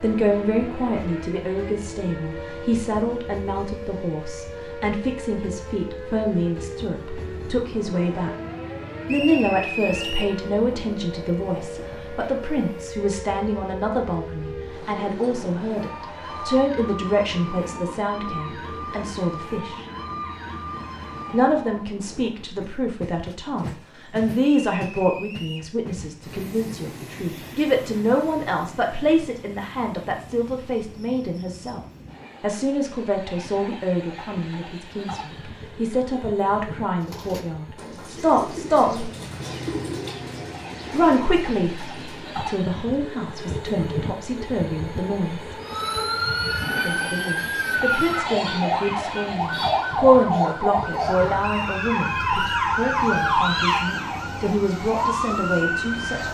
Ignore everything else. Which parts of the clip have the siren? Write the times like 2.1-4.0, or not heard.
0.0-21.9, 45.6-56.2.